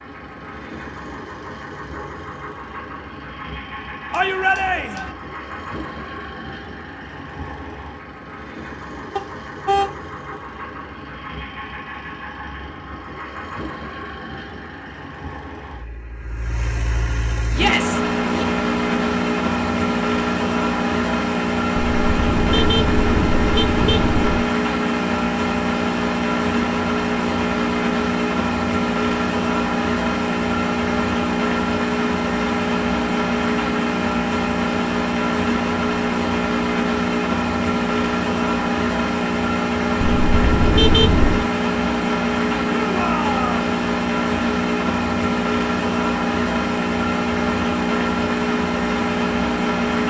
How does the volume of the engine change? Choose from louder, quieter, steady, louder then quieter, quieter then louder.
louder.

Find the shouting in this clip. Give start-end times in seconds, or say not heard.
4.1-5.1, 17.5-18.4, 42.8-43.5.